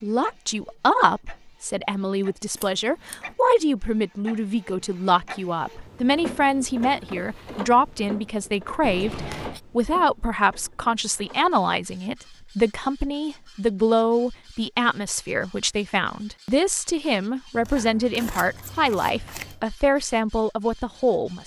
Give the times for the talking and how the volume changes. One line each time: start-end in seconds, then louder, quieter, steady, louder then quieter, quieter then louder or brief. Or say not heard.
0.0-21.4 steady.